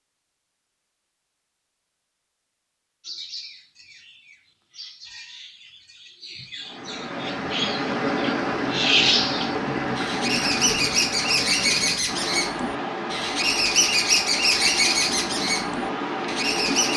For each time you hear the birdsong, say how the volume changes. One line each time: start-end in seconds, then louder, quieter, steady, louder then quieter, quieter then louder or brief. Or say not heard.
3.0-16.9 louder.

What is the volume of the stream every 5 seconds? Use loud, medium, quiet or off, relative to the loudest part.
off, loud, loud, loud.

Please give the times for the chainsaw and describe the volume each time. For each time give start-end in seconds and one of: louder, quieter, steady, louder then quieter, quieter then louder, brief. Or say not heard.
not heard.